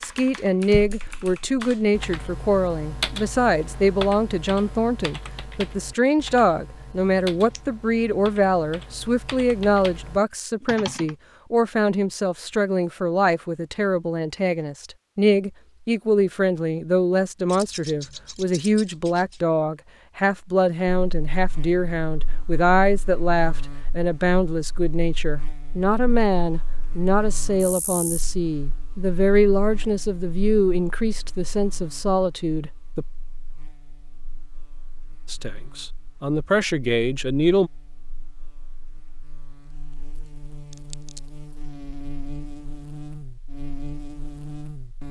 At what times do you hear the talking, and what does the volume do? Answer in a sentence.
The talking can be heard from 0.0 to 33.0 s, at a steady volume; and briefly from 35.2 to 37.7 s.